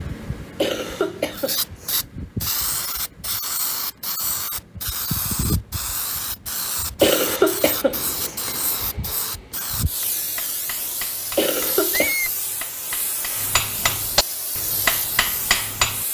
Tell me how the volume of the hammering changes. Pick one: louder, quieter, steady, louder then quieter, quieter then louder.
louder.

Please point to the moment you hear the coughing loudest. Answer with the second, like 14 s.
7 s.